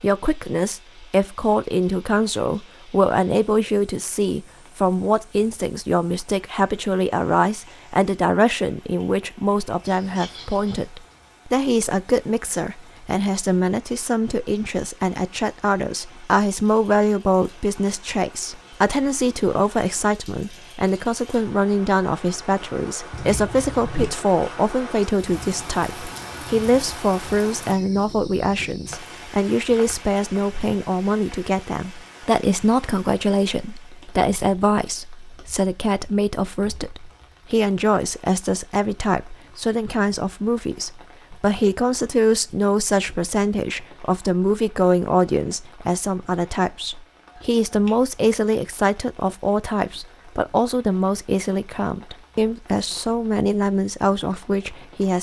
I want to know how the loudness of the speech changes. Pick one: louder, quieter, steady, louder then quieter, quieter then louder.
steady.